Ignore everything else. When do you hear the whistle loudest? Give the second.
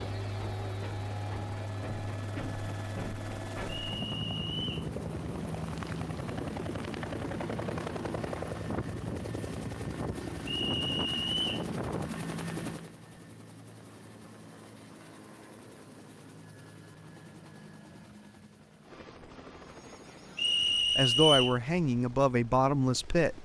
21 s.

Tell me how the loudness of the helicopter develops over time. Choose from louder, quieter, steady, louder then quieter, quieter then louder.
quieter.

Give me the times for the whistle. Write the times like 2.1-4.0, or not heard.
3.9-4.9, 10.4-11.7, 20.4-21.6.